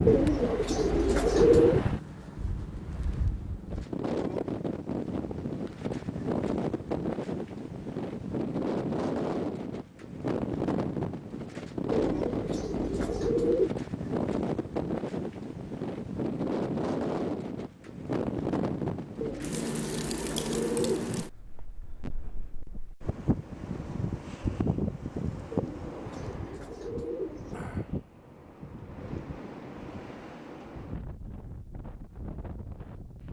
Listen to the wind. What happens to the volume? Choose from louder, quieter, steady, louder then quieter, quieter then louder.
quieter.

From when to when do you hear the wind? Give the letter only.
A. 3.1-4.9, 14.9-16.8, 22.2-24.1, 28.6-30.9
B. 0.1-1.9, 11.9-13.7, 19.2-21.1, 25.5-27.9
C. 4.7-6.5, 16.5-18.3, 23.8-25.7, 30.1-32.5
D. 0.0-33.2
D.